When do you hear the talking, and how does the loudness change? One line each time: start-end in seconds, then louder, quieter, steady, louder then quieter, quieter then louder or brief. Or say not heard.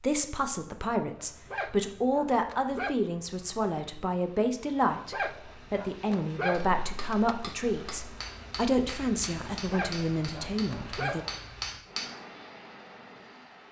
0.0-11.2 steady.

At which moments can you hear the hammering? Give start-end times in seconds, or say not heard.
6.5-12.1.